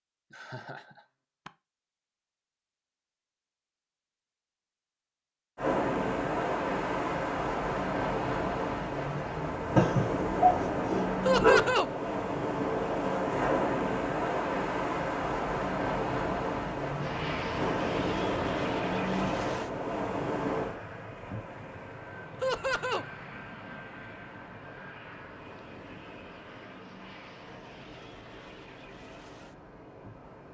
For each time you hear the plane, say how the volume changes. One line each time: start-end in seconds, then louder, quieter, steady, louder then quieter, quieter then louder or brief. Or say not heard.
16.9-30.4 quieter.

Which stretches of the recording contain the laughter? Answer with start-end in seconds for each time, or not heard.
0.3-1.5, 11.2-11.9, 22.4-23.1.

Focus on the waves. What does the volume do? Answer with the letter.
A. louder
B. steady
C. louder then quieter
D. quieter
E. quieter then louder
D.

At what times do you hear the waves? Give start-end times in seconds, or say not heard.
5.5-30.4.